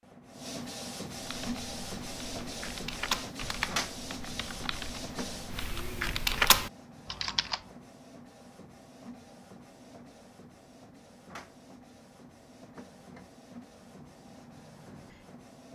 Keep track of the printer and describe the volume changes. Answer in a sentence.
The volume of the printer goes down.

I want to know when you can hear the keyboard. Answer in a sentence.
You can hear the keyboard from 1.1 to 7.6 s.